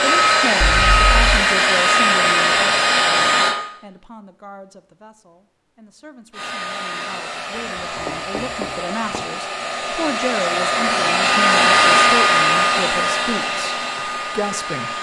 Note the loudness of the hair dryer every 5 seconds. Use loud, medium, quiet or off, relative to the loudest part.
loud, quiet, loud.